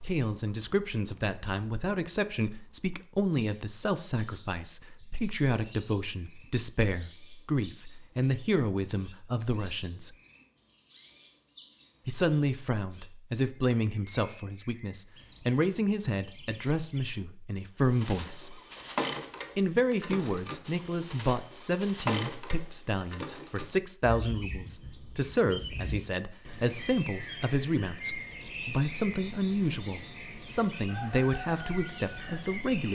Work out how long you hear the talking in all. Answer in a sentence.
The talking can be heard for 30 seconds in total.